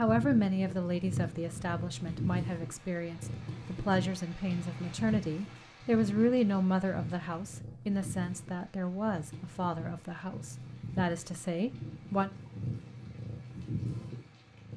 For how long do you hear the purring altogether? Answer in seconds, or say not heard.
15 s.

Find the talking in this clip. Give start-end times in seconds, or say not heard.
0.0-12.3.